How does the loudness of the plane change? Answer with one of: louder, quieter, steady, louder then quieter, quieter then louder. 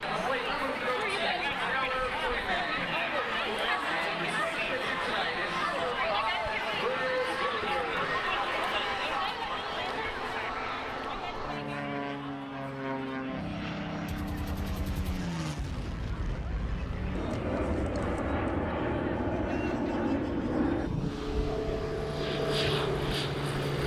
louder.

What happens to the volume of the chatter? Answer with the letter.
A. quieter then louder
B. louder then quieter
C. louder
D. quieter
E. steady
D.